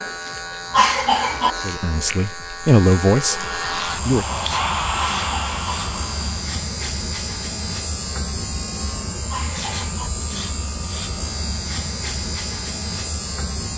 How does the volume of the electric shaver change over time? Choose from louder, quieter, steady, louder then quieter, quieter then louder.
steady.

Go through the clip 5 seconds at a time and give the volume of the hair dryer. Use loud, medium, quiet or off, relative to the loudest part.
loud, loud, off.